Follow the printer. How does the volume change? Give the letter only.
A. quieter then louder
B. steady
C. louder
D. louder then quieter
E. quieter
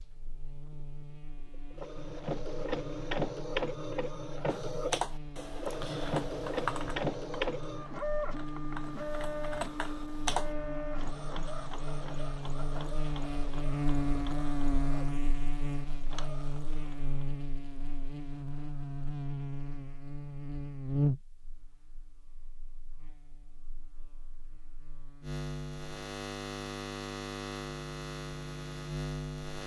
E.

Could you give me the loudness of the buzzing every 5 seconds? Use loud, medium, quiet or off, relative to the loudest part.
quiet, medium, loud, loud, loud, loud.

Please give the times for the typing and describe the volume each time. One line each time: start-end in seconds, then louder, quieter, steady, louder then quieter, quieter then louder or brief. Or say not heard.
4.5-10.6 quieter then louder.